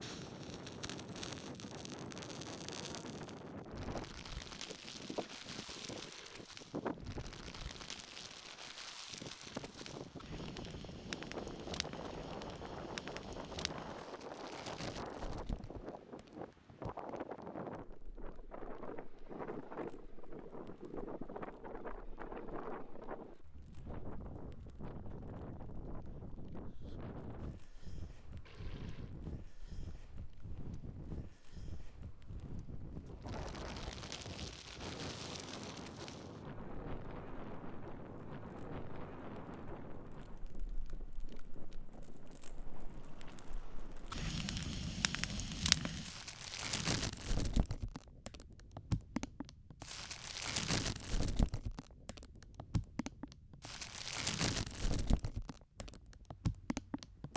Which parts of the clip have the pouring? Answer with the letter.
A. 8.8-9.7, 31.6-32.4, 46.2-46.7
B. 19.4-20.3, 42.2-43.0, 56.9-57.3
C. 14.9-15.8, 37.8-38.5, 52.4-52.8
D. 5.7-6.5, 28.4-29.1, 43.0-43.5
D.